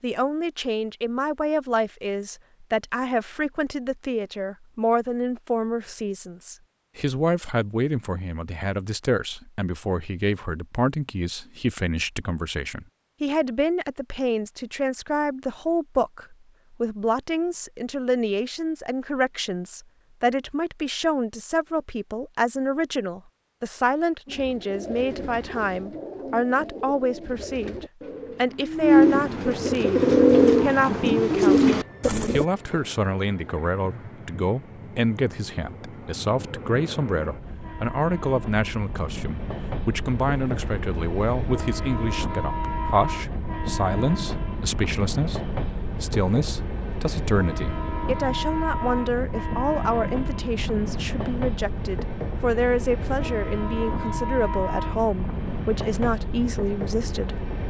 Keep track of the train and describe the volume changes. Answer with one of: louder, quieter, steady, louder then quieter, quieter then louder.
louder.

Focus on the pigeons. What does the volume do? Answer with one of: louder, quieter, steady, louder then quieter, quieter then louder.
louder.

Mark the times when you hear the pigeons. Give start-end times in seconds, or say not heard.
24.2-32.5.